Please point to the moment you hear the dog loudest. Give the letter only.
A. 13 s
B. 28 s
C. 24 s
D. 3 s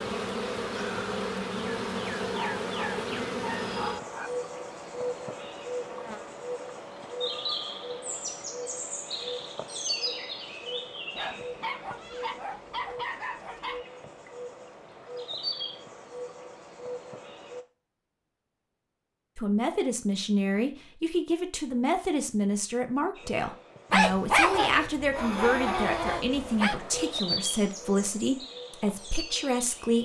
C.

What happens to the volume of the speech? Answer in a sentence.
The loudness of the speech stays about the same.